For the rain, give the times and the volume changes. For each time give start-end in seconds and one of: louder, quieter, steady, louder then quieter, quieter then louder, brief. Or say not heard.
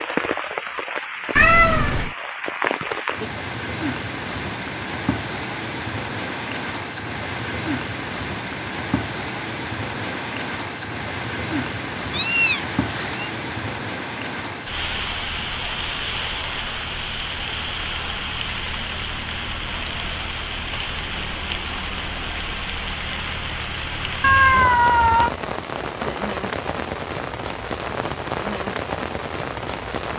0.0-30.1 steady.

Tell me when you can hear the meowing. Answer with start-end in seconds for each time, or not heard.
1.4-2.1, 12.1-13.3, 24.2-25.3.